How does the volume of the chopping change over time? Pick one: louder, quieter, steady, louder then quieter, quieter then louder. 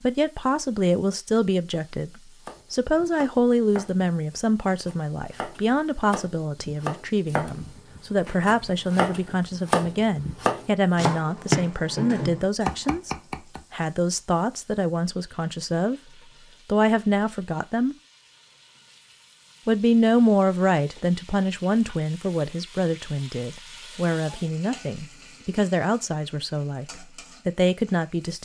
louder.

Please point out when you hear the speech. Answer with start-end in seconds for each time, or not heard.
0.0-16.0, 16.6-17.9, 19.6-28.4.